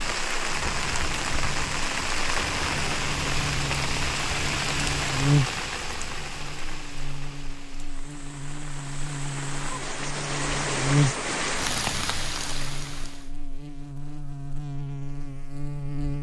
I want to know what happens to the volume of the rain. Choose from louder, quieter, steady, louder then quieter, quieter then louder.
quieter then louder.